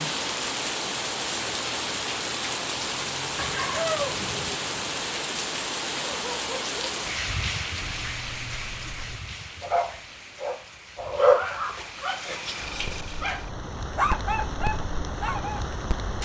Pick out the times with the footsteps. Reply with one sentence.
You can't hear the footsteps here.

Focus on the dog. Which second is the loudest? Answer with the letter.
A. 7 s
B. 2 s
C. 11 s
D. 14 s
C.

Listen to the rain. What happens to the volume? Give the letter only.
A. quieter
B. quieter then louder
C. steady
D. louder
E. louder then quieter
B.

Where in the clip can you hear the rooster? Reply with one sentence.
The rooster can be heard from 3.4 to 4.5 s.